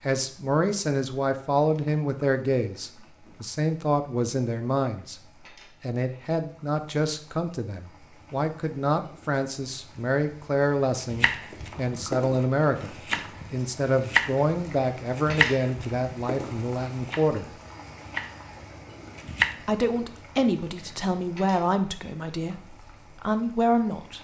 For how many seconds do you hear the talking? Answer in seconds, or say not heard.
21 s.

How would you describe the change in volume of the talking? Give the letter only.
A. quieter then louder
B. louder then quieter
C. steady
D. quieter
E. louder
C.